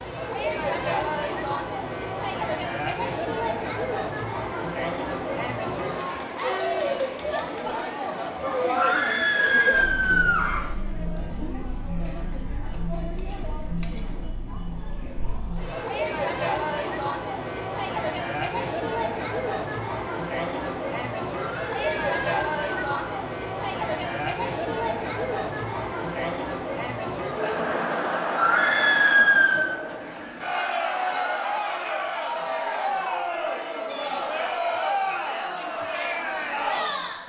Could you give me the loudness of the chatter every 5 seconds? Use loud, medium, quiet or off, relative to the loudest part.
loud, loud, medium, loud, loud, loud, loud, loud.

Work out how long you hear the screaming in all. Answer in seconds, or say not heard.
5 s.